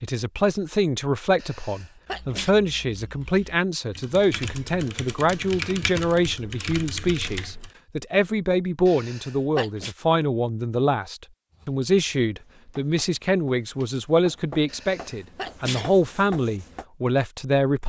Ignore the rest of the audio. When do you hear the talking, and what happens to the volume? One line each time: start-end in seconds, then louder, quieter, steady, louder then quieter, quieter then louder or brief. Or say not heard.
0.0-17.8 steady.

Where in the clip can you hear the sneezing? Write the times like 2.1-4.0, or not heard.
1.4-2.5, 8.8-9.9, 14.7-15.9.